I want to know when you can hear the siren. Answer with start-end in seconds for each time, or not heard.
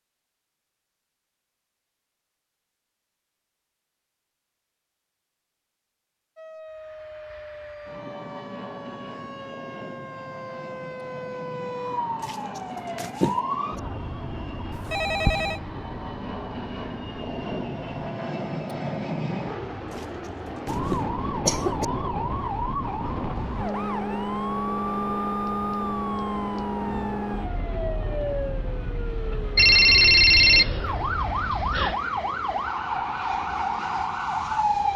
6.3-18.0, 20.6-34.9.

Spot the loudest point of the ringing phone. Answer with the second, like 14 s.
30 s.